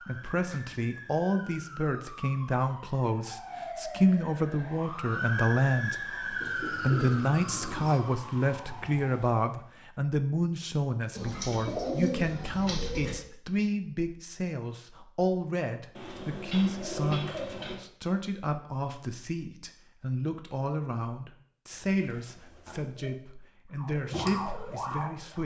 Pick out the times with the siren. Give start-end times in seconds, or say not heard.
0.0-9.5, 23.8-25.4.